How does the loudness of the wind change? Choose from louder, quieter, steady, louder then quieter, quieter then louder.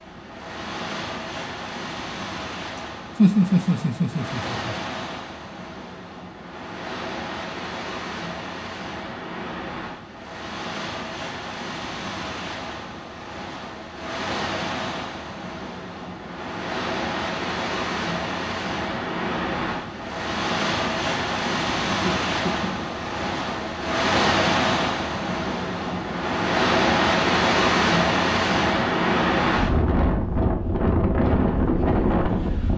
louder.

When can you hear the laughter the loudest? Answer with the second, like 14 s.
3 s.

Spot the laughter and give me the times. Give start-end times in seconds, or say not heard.
2.8-4.8, 21.9-22.9.